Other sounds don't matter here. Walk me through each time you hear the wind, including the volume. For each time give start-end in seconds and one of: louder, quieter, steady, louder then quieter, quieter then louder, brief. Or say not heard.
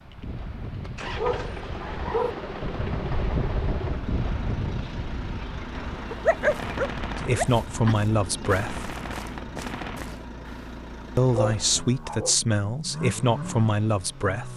0.0-10.1 louder then quieter.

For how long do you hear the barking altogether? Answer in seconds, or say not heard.
5 s.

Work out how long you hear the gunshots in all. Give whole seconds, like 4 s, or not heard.
5 s.